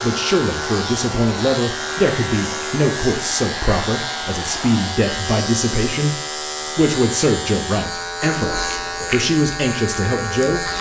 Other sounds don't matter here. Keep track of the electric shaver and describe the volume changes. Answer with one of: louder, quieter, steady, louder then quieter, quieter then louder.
steady.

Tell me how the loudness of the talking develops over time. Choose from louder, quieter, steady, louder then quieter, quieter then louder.
steady.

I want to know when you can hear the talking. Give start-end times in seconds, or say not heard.
0.0-10.7.